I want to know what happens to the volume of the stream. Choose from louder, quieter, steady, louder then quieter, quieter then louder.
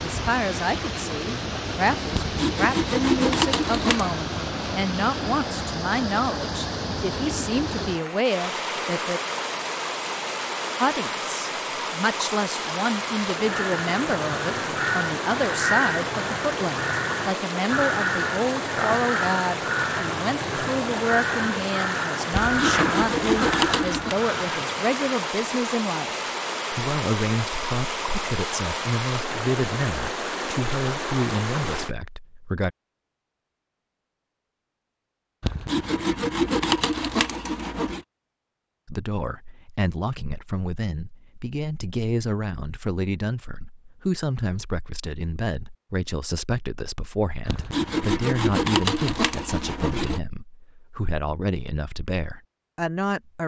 steady.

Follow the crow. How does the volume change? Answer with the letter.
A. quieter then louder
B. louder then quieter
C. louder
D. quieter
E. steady
E.